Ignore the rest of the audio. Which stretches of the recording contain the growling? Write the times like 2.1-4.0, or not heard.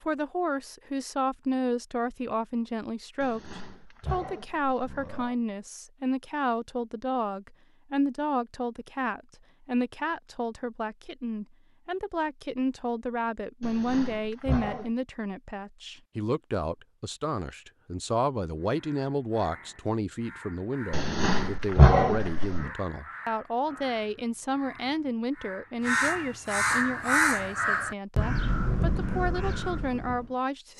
3.2-5.3, 13.6-14.9, 20.9-22.7.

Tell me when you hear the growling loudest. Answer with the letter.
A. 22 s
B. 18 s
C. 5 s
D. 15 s
A.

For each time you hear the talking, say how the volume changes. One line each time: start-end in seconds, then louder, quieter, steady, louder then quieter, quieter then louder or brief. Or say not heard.
0.0-30.7 steady.